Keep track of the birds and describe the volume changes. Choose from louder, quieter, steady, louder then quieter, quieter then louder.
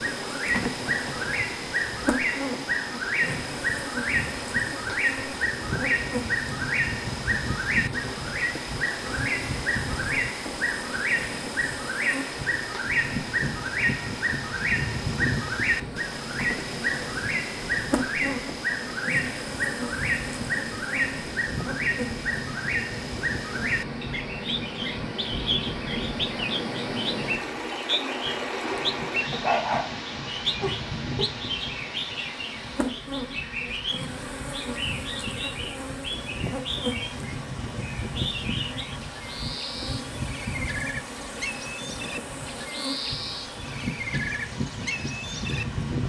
quieter.